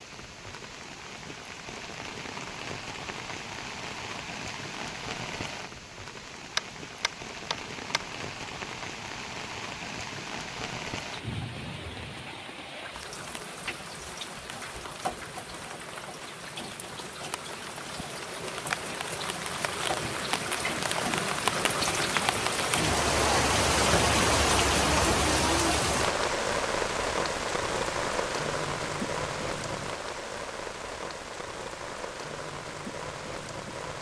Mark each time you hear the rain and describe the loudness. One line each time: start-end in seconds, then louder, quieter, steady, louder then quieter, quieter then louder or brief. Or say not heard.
0.0-33.9 louder then quieter.